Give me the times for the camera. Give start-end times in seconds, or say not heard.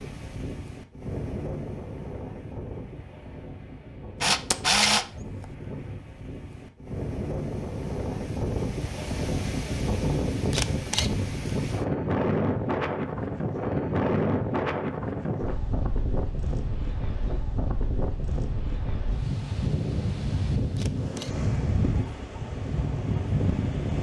4.2-5.5, 10.5-11.1, 20.8-21.3.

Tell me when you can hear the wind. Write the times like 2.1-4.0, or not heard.
0.0-23.9.